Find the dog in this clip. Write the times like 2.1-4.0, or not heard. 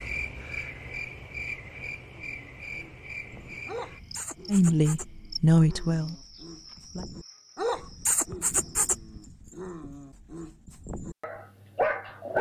2.1-12.3.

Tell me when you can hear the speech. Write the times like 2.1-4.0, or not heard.
4.5-7.0.